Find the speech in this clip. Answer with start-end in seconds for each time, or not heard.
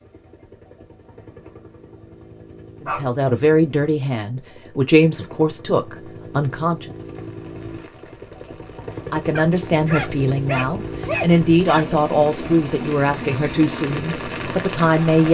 2.8-6.9, 9.1-15.2.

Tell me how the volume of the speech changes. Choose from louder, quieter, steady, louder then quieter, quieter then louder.
steady.